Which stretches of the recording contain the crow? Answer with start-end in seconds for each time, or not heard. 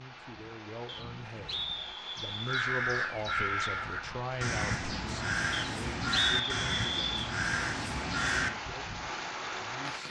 2.1-8.5.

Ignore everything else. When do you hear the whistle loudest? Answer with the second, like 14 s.
6 s.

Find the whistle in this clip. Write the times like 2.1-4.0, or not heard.
0.8-2.6, 5.5-7.3.